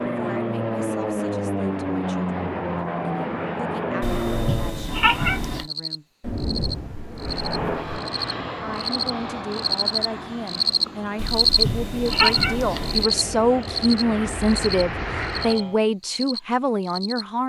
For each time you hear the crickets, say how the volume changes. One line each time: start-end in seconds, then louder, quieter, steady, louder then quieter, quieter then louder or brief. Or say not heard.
5.5-17.2 louder then quieter.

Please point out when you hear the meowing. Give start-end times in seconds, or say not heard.
4.0-5.7, 11.2-13.1.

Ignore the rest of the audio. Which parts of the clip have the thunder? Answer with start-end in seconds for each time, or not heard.
6.2-8.0.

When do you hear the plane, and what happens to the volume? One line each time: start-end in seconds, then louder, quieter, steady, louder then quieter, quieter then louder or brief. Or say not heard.
0.0-4.9 steady
7.1-15.8 quieter then louder.